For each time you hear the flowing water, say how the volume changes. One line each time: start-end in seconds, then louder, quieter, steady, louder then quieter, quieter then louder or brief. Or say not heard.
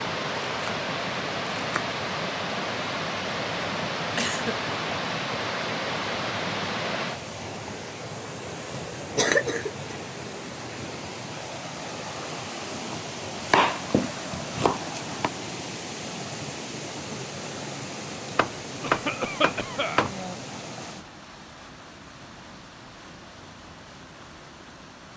0.0-25.1 quieter.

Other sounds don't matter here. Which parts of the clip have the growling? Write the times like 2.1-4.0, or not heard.
not heard.